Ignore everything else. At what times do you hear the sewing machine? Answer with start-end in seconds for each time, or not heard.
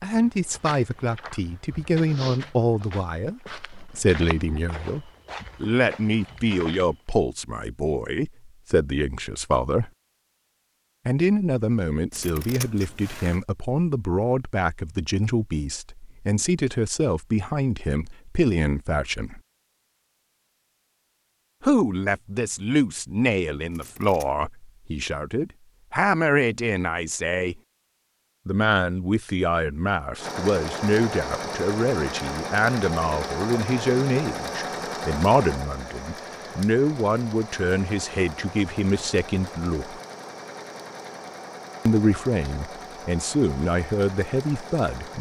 30.1-45.1.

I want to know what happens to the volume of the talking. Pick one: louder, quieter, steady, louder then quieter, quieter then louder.
steady.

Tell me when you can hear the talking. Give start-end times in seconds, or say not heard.
0.0-9.9, 11.1-19.4, 21.6-27.6, 28.4-40.0, 41.9-45.1.